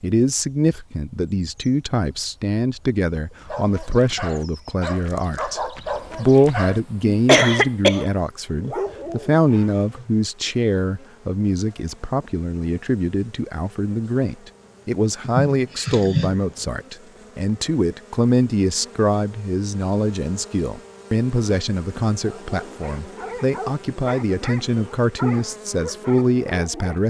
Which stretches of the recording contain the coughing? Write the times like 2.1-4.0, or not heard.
7.2-8.1, 15.2-16.4.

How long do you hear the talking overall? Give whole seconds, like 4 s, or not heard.
27 s.